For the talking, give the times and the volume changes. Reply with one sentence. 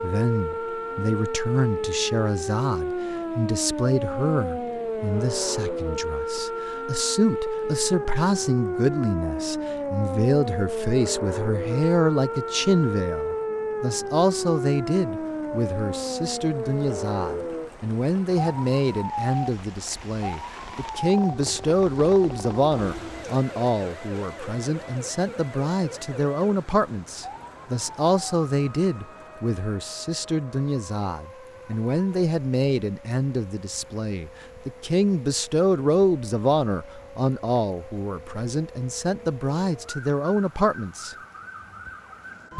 You can hear the talking from 0.0 to 41.1 s, at a steady volume.